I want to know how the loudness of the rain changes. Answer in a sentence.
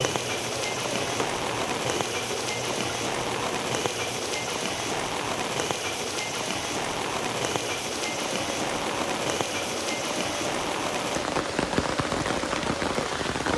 The volume of the rain stays about the same.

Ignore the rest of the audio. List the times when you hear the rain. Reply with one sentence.
The rain can be heard from 0.0 to 13.5 s.